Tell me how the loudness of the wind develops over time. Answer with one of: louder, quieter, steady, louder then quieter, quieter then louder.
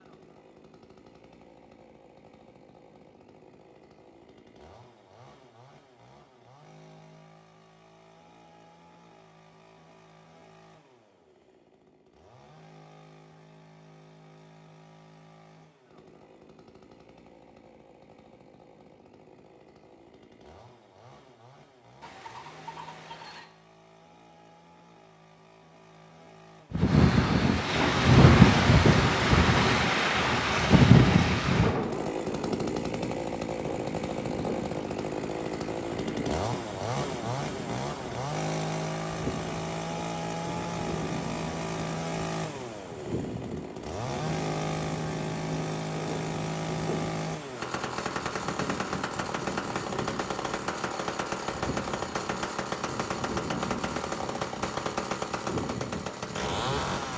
quieter.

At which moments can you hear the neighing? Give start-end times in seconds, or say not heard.
22.0-23.5.